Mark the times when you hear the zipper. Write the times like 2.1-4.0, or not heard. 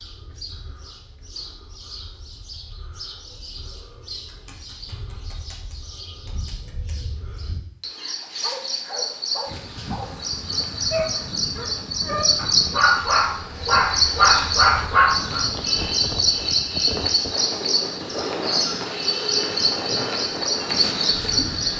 not heard.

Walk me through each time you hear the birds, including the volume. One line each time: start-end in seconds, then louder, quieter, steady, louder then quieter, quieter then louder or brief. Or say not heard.
0.0-21.7 louder.